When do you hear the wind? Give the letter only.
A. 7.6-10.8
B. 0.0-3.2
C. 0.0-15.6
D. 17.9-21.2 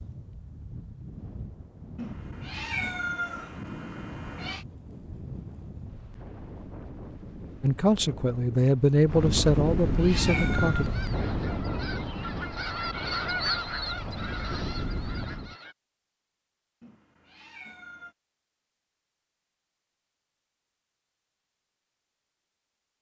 C.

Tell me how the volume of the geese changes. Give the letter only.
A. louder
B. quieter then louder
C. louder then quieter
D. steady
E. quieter
C.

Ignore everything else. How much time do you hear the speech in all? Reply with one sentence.
The speech can be heard for 3 seconds in total.